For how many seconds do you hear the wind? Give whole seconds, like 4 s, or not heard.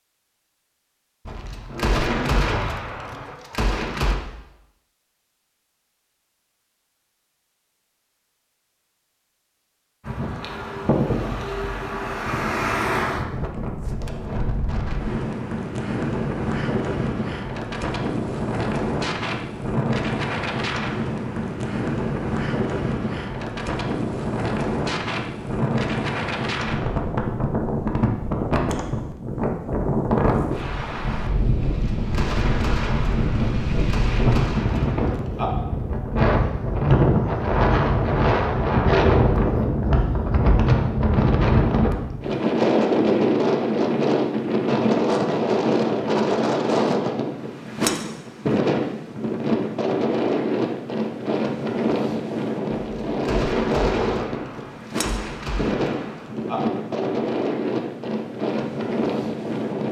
50 s.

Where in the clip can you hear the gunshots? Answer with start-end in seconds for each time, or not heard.
1.2-4.2, 31.6-35.5, 52.8-56.6.